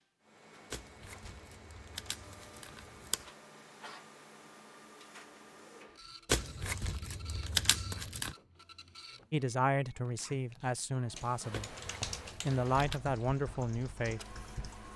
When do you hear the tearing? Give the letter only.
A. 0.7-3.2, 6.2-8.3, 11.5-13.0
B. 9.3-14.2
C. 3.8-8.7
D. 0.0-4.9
A.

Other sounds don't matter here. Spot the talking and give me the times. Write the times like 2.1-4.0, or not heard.
9.3-14.2.